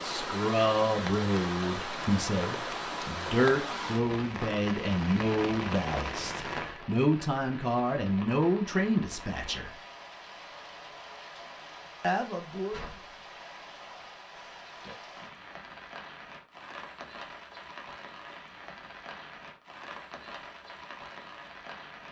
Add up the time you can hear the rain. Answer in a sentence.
The rain can be heard for 22 seconds in total.